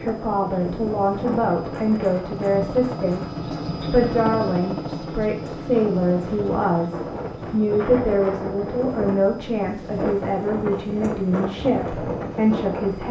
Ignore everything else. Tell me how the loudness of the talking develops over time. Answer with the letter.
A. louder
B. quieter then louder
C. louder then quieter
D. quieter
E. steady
E.